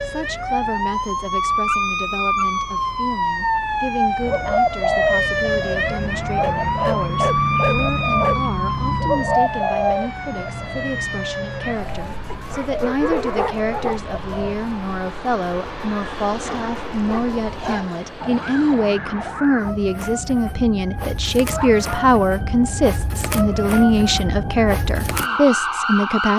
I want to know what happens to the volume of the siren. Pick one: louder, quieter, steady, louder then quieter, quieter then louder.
quieter then louder.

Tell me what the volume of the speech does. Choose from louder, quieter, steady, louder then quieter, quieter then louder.
louder.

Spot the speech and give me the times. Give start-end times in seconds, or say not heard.
0.0-26.3.